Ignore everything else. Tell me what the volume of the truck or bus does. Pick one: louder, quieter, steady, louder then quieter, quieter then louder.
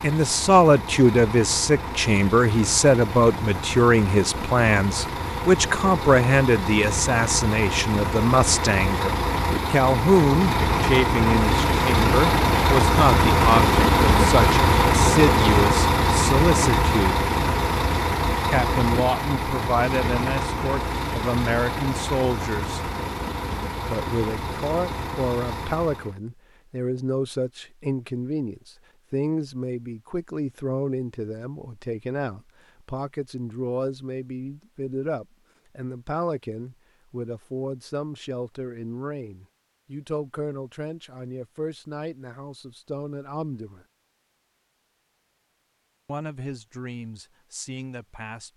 louder then quieter.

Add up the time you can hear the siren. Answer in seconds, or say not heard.
not heard.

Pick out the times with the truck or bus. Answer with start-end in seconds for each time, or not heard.
0.0-26.2.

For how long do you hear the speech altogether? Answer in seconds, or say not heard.
44 s.